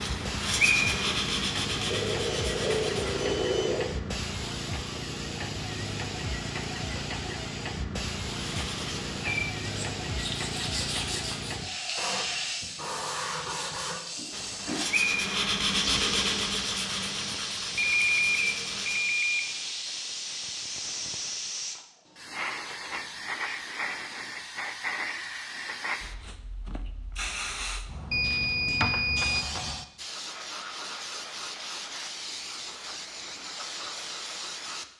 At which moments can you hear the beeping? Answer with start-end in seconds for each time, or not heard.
1.9-4.0, 17.8-19.4, 28.1-29.4.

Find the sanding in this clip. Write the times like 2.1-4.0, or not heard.
0.0-3.3, 8.3-19.1.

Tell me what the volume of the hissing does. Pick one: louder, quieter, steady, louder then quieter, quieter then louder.
steady.